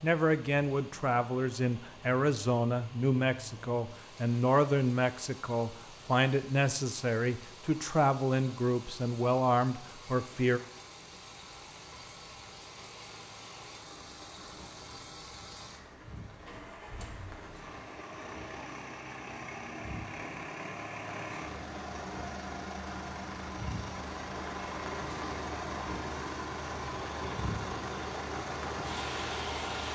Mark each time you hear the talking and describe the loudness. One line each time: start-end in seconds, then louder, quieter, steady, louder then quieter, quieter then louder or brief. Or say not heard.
0.0-10.6 steady.